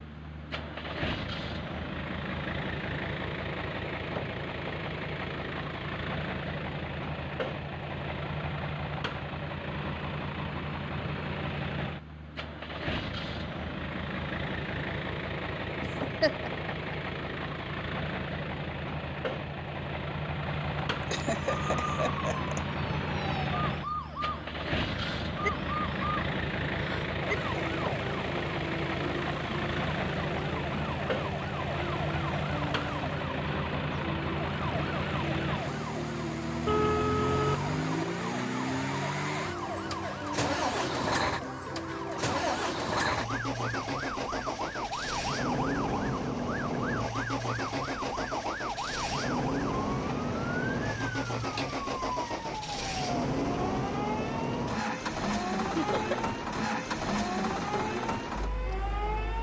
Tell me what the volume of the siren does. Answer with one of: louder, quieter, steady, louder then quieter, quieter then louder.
steady.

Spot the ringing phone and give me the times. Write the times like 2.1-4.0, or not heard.
36.6-37.8.